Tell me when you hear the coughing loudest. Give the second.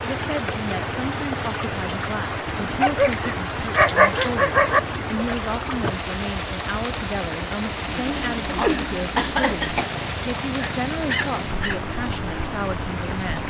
9 s.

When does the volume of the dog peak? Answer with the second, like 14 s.
4 s.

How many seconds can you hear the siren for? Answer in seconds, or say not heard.
not heard.